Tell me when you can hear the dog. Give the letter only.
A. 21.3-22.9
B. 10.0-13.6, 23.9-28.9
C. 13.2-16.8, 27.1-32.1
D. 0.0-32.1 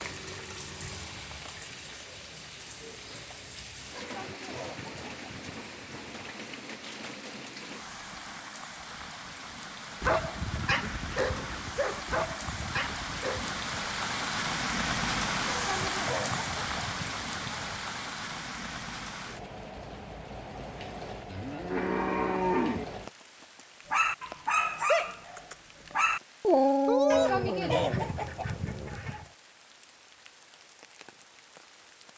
B.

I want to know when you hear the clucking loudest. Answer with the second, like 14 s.
28 s.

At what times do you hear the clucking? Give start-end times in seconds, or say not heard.
4.0-6.4, 15.4-17.7, 27.1-29.2.